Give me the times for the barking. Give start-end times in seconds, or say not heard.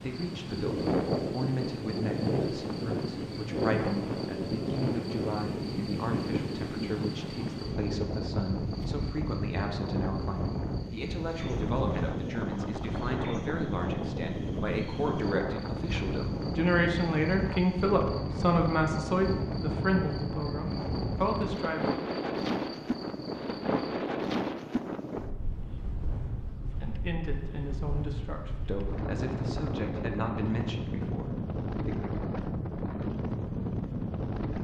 not heard.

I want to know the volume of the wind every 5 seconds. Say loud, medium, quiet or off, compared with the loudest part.
loud, loud, loud, loud, loud, medium, loud.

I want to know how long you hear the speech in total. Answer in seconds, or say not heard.
27 s.